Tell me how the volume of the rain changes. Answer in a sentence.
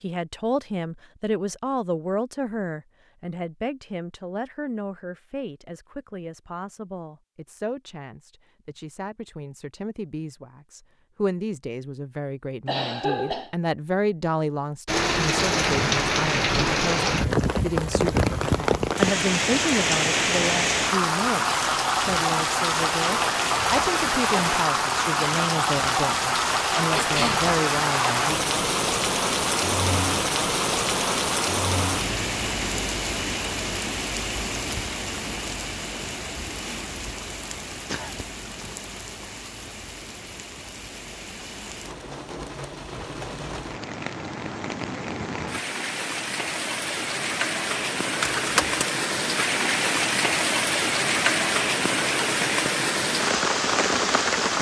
The volume of the rain goes down, then up.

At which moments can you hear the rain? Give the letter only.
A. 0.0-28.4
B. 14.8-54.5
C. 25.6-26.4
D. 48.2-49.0
B.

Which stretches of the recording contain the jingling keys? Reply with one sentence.
You can hear the jingling keys from 48.2 to 49.0 s.